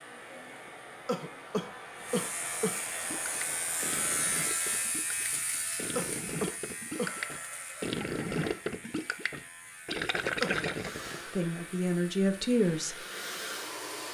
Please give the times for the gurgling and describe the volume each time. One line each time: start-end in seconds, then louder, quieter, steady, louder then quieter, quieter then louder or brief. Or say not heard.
3.0-11.4 louder.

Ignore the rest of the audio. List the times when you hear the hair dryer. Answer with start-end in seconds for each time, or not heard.
0.0-5.0, 6.9-8.5, 10.7-14.1.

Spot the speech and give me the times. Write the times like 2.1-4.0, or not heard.
11.3-13.1.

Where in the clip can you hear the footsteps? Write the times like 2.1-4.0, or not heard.
not heard.